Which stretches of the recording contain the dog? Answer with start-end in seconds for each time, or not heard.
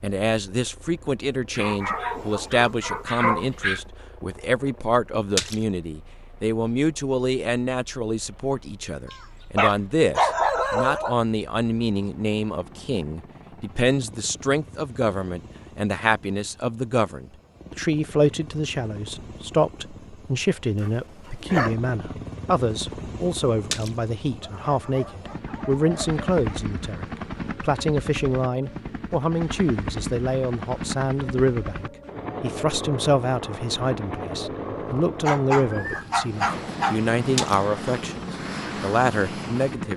1.6-3.8, 9.1-11.2, 20.8-21.8, 24.4-26.6, 35.2-37.5.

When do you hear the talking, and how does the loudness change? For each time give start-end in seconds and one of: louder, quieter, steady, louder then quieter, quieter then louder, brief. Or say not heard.
0.0-39.9 steady.